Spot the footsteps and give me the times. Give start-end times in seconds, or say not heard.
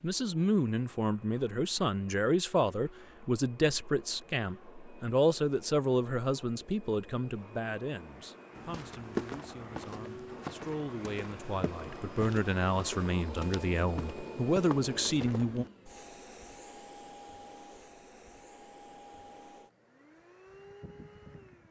8.6-15.9.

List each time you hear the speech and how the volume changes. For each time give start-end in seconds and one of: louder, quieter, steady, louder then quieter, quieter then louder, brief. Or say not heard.
0.0-15.7 quieter then louder.